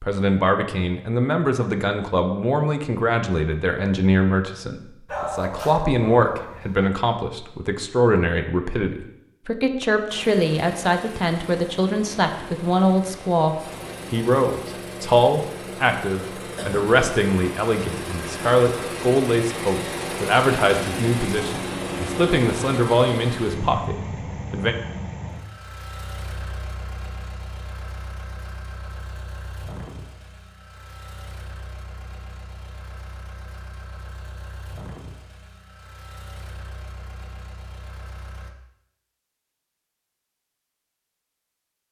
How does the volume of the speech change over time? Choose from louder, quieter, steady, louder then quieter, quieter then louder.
steady.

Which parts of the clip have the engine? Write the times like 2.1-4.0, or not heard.
10.1-38.5.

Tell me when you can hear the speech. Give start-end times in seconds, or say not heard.
0.0-24.8.